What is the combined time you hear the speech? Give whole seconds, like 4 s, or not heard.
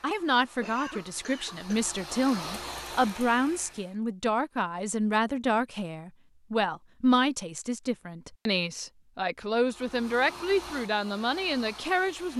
12 s.